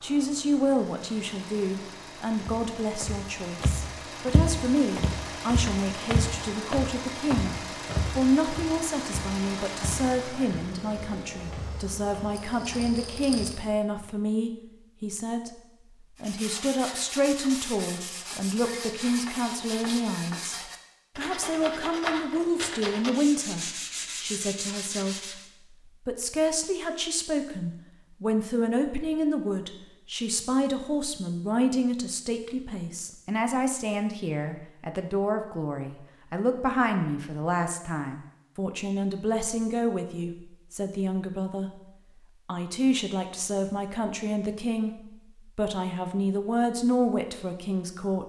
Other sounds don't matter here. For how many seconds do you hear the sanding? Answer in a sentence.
The sanding can be heard for 9 seconds in total.